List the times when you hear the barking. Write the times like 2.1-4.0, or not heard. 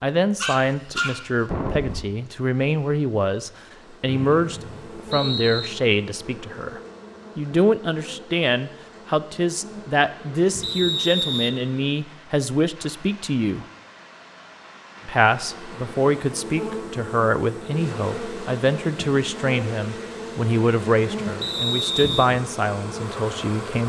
0.3-2.0.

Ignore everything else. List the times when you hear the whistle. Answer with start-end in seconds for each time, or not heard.
4.0-5.7, 10.6-11.6, 21.4-22.2.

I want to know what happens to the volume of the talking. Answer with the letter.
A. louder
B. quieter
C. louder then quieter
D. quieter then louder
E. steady
E.